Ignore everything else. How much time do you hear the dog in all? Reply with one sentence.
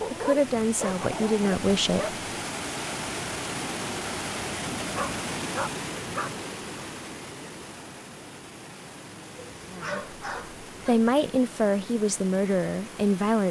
You can hear the dog for 5 seconds altogether.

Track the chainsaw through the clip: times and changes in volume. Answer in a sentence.
The chainsaw can't be heard in this clip.